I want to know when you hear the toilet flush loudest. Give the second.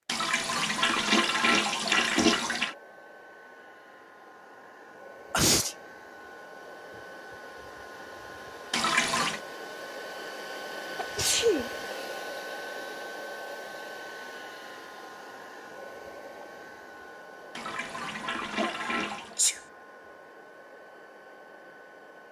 2 s.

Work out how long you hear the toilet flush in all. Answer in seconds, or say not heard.
5 s.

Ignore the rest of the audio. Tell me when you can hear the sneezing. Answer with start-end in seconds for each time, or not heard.
5.3-5.8, 10.9-11.7, 18.6-19.6.